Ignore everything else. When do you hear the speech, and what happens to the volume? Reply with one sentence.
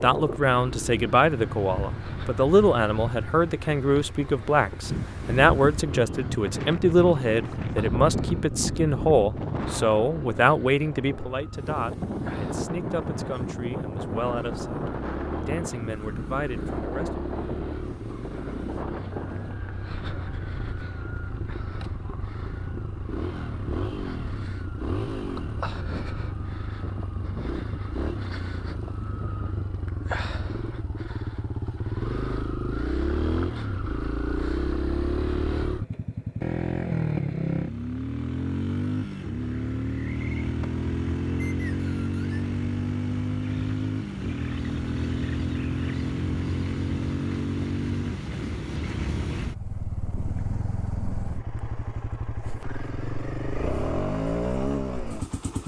The speech can be heard from 0.0 to 17.2 s, getting quieter.